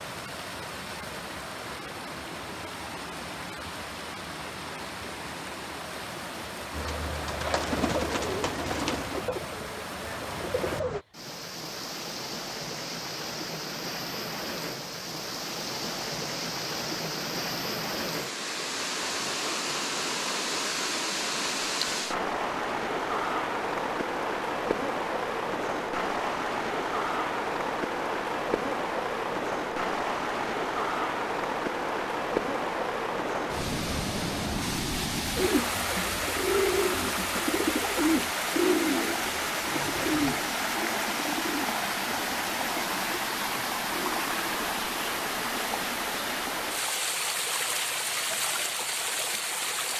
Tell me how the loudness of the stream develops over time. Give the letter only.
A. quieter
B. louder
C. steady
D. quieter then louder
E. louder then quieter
B.